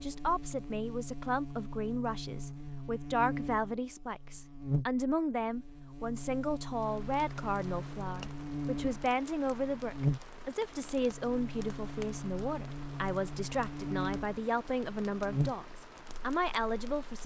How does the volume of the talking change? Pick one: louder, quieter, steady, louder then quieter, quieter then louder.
steady.